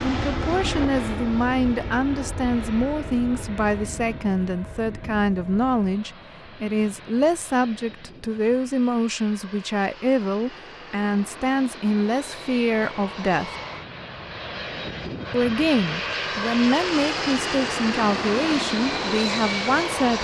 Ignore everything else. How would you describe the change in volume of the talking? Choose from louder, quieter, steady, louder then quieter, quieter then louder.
steady.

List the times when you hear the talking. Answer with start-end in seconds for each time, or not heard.
0.1-13.5, 15.3-20.1.